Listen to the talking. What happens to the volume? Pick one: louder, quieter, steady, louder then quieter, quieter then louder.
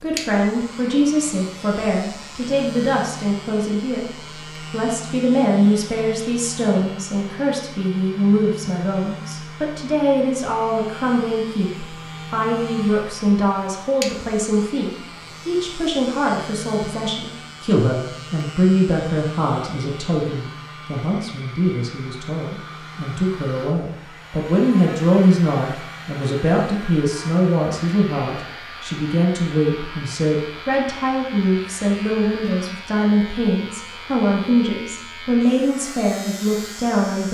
steady.